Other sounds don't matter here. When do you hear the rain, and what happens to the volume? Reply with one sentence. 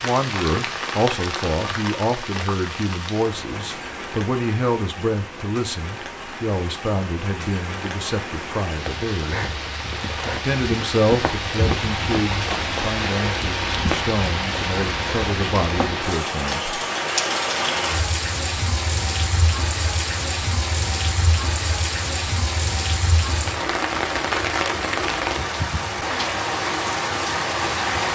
The rain can be heard from 0.0 to 28.1 s, getting louder.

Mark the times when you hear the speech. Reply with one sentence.
The speech can be heard from 0.0 to 9.4 s and from 10.2 to 16.8 s.